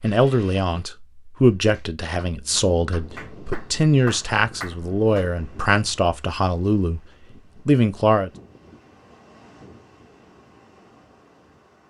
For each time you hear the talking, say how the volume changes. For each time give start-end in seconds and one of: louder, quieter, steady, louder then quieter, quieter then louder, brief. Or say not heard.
0.0-7.0 steady
7.7-8.3 brief.